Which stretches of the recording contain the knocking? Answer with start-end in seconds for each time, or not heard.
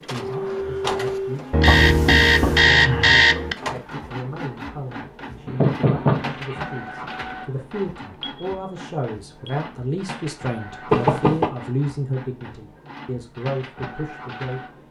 1.6-2.6, 5.5-6.6, 10.9-11.5.